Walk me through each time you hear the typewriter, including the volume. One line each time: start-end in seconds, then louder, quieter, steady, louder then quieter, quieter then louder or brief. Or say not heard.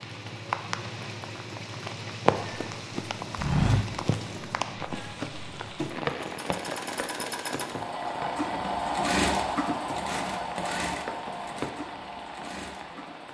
not heard.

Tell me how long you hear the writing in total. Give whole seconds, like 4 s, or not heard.
not heard.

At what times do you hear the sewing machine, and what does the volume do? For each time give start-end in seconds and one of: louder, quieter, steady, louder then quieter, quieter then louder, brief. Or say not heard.
0.0-13.2 louder then quieter.